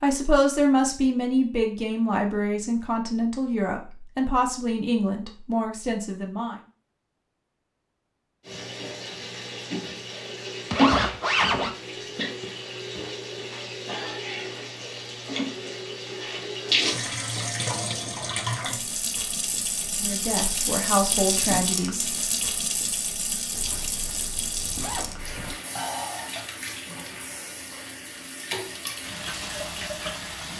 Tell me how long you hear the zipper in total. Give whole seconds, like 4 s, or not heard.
3 s.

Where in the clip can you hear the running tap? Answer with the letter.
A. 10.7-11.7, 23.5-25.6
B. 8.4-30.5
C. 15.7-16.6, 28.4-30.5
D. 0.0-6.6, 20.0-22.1
B.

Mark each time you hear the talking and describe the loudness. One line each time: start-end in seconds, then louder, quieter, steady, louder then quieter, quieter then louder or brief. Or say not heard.
0.0-6.6 quieter
20.0-22.1 brief.